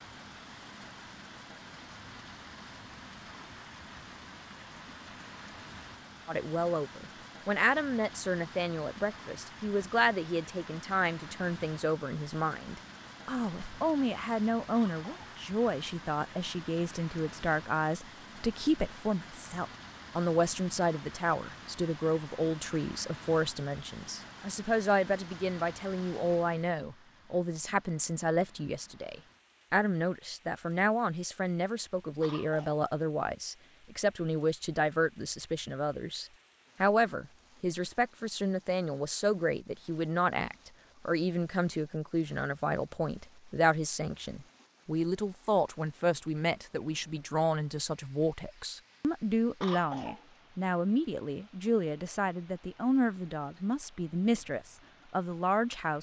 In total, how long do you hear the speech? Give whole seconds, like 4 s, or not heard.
50 s.